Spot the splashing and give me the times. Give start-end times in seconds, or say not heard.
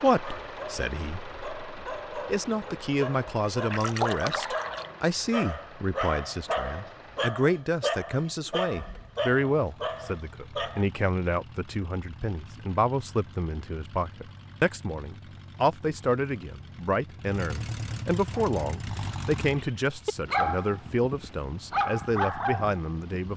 3.7-4.9.